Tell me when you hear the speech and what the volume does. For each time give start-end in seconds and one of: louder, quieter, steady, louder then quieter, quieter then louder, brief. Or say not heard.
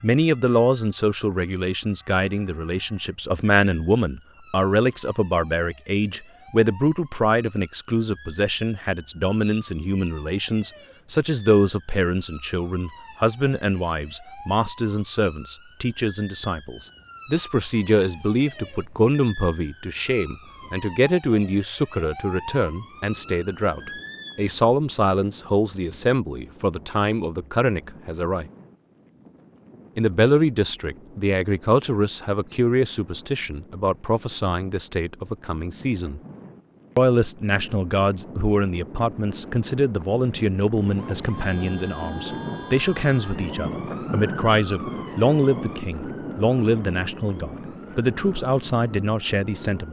0.0-28.4 steady
29.9-36.2 quieter
37.0-49.8 steady.